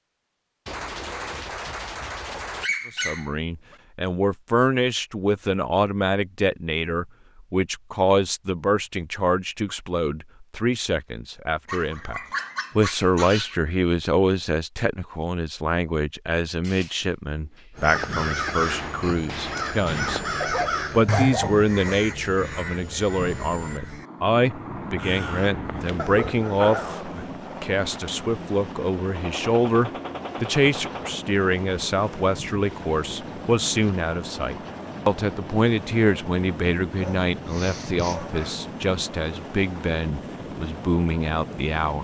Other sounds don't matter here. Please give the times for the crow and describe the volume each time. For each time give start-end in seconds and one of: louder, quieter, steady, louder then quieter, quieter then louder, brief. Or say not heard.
17.8-26.2 quieter then louder.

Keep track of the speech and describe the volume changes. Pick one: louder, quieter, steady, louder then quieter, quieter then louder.
steady.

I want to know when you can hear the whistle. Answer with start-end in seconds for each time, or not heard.
not heard.